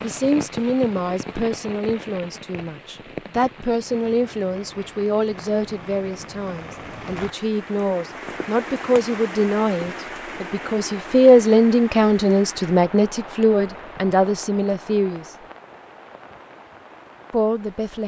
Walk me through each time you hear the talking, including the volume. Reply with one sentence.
The talking can be heard from 0.0 to 15.2 s, getting louder; and briefly from 17.3 to 18.0 s.